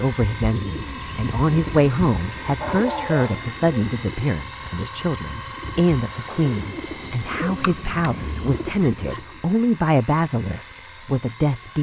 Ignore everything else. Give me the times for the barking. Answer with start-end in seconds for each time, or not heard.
2.5-3.5, 8.8-9.2.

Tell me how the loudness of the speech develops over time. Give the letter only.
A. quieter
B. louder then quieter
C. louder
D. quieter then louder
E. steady
E.